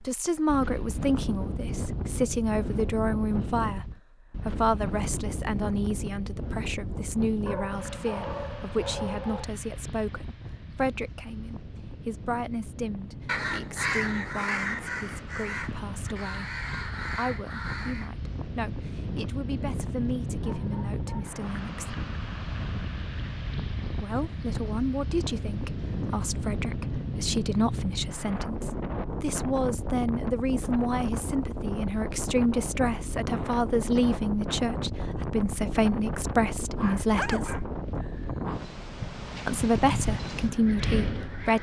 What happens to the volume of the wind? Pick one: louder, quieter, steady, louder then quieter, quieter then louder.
quieter then louder.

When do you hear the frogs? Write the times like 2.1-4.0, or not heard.
not heard.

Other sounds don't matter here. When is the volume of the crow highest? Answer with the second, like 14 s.
14 s.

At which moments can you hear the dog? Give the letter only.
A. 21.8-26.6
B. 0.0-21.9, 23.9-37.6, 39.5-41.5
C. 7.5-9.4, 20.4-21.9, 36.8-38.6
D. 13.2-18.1
C.